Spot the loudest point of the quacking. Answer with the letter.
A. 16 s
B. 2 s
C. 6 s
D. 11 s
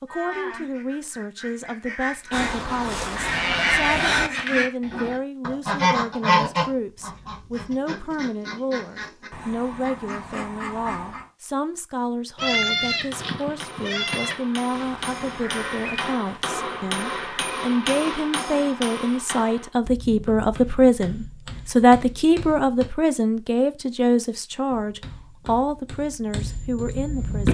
C.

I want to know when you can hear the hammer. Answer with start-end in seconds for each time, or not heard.
13.1-22.9, 24.6-27.4.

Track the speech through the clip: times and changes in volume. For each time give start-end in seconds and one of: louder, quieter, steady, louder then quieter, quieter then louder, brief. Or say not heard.
0.0-27.4 louder.